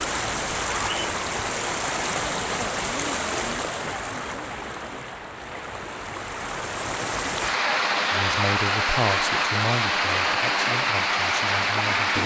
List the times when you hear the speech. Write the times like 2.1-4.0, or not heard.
8.1-12.1.